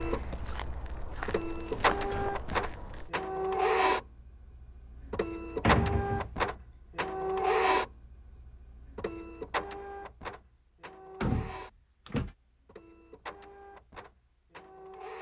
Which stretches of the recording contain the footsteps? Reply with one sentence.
You can hear the footsteps from 0.0 to 3.1 s.